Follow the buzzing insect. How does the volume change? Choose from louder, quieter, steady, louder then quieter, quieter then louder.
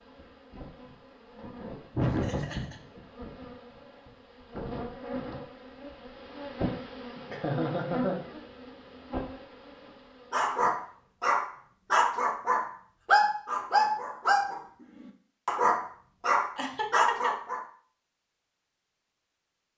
louder then quieter.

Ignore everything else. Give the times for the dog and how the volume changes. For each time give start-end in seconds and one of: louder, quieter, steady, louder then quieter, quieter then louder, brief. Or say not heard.
10.3-17.6 steady.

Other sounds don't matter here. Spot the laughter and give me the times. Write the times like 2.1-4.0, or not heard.
1.9-2.8, 7.2-8.2, 16.6-17.4.